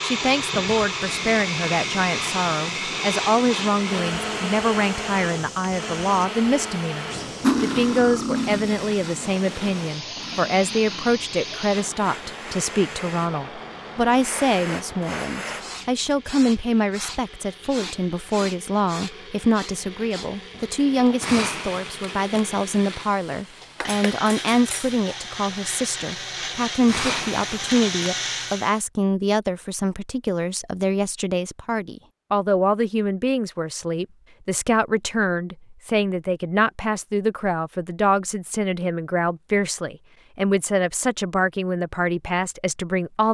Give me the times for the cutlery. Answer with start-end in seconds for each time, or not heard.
7.4-8.8, 23.8-25.2.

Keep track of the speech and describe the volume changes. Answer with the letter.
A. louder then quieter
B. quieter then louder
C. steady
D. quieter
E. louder
C.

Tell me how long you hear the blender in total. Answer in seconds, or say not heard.
29 s.